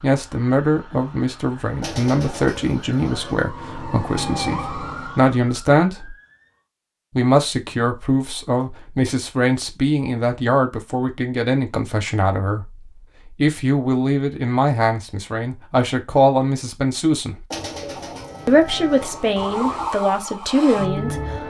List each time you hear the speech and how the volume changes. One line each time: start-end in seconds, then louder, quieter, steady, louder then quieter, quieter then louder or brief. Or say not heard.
0.0-6.2 quieter then louder
7.2-17.4 steady
18.4-21.4 brief.